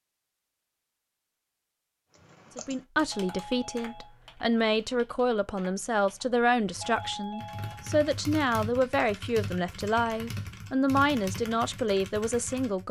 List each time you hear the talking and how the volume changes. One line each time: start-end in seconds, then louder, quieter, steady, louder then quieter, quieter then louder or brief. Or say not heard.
2.5-12.8 steady.